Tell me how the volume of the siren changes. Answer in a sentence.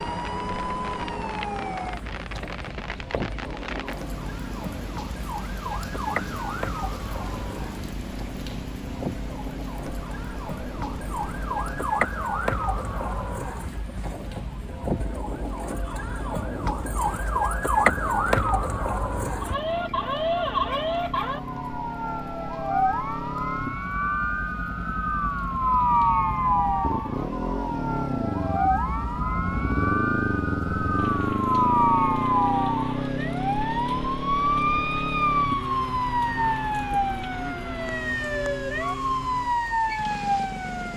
The volume of the siren goes up.